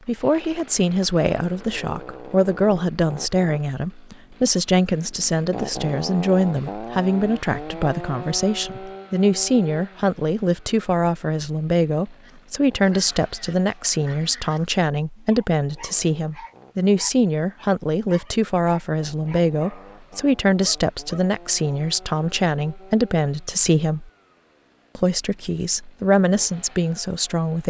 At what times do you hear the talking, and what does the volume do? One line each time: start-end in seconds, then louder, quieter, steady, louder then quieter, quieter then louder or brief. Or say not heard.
0.1-24.1 steady
24.9-27.6 brief.